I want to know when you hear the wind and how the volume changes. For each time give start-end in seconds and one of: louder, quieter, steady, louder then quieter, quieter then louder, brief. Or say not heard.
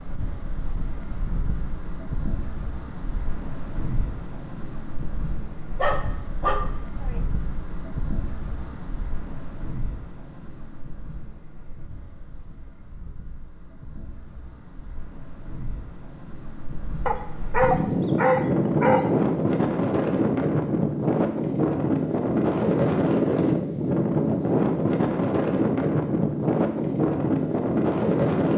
0.0-28.5 quieter then louder.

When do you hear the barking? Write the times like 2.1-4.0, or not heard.
5.8-7.2, 17.1-19.1.